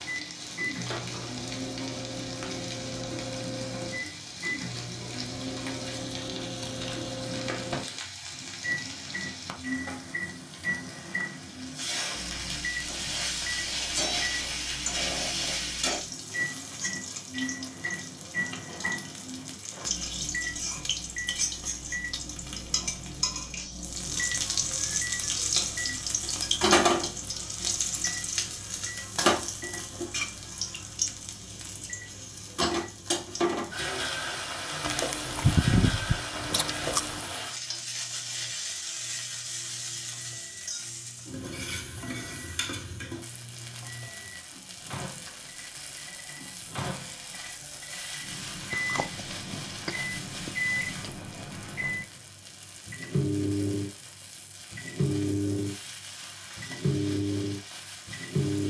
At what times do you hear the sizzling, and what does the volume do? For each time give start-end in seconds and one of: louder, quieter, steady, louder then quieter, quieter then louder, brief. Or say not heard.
0.0-58.6 louder then quieter.